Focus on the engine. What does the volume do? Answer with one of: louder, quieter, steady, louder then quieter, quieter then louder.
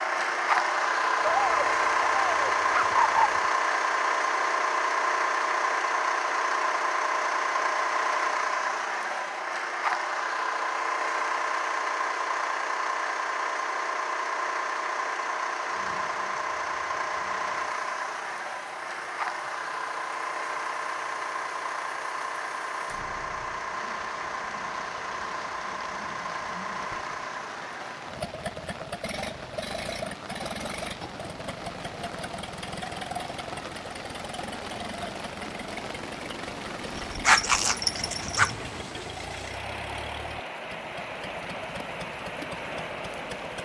quieter.